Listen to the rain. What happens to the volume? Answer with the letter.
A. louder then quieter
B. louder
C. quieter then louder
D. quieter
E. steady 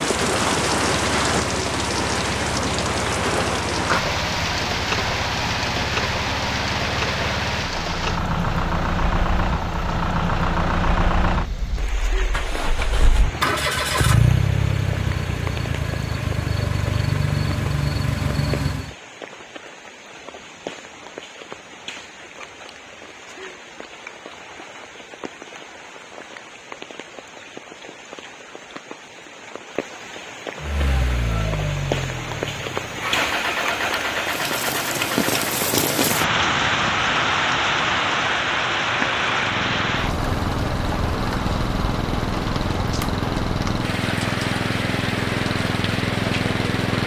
C.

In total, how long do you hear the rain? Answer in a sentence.
The rain can be heard for 47 seconds in total.